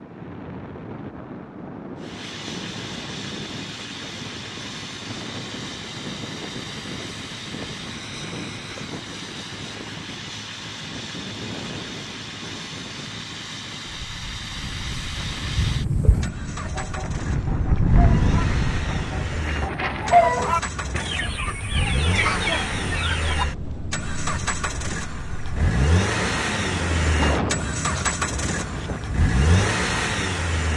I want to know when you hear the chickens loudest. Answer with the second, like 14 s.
20 s.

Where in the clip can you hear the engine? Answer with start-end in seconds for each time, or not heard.
1.9-30.7.